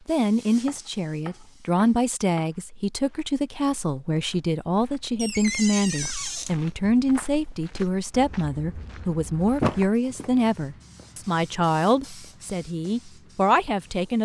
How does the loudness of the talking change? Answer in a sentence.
The volume of the talking stays about the same.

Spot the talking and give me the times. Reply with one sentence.
The talking can be heard from 0.1 to 14.2 s.